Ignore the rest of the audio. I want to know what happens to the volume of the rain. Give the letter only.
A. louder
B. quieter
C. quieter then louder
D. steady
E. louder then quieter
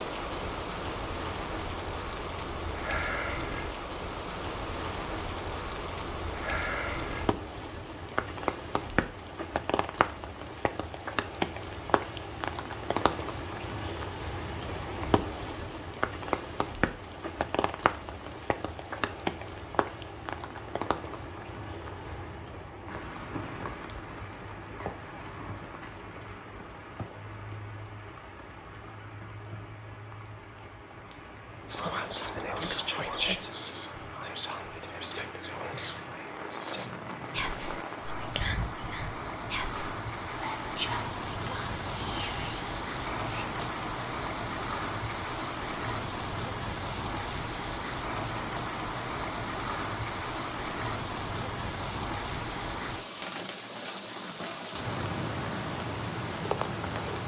C.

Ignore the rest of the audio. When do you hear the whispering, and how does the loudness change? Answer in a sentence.
You can hear the whispering from 31.6 to 43.6 s, getting quieter.